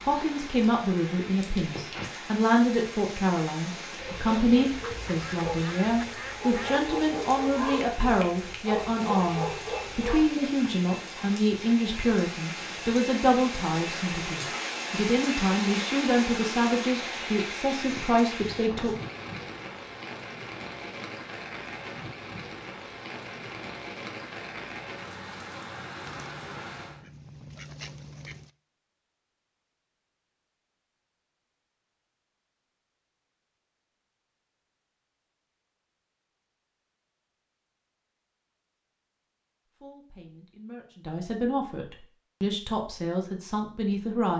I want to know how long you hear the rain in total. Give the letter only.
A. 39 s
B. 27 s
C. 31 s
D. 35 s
B.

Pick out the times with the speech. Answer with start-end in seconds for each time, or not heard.
0.0-18.9, 39.8-44.3.